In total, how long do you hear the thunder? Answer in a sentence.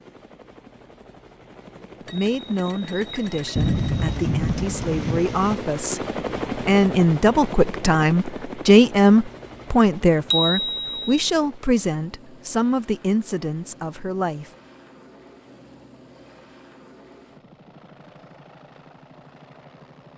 The thunder can be heard for 2 seconds in total.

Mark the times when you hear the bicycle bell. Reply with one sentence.
You can hear the bicycle bell from 2.0 to 4.1 s and from 10.3 to 11.1 s.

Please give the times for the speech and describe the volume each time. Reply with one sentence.
You can hear the speech from 2.1 to 14.5 s, getting louder then quieter.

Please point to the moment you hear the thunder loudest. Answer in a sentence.
The loudest moment of the thunder is at 4 seconds.